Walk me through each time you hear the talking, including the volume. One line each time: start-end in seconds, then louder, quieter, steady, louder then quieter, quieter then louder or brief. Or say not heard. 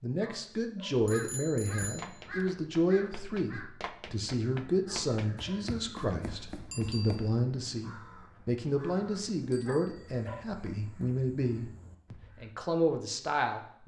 0.0-13.8 steady.